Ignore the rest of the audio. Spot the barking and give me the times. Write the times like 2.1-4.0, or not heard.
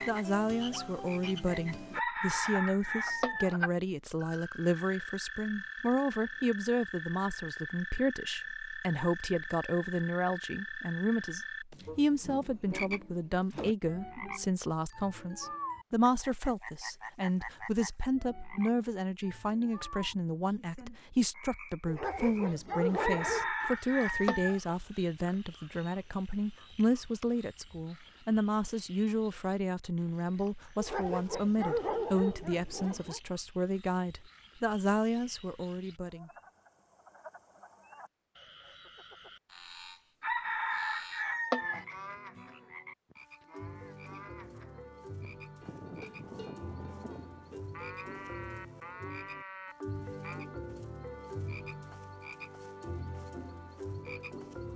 21.9-23.5, 30.8-33.2.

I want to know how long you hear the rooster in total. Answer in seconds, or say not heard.
5 s.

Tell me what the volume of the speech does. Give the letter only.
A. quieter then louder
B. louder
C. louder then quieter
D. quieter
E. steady
E.